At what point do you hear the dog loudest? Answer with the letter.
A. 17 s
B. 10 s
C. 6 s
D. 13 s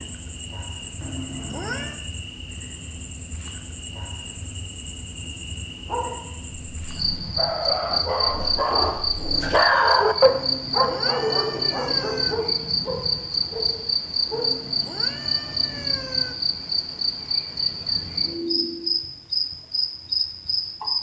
B.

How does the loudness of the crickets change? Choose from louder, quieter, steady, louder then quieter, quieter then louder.
louder.